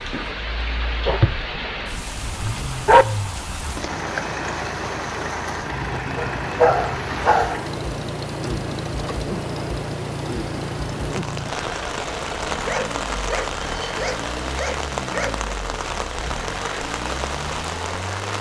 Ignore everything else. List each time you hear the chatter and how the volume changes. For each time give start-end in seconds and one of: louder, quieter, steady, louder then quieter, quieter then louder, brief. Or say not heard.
not heard.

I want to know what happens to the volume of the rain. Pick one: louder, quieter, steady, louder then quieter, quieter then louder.
steady.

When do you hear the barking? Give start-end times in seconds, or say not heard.
1.1-3.0, 6.2-7.5, 12.6-15.5.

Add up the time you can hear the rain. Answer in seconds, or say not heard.
18 s.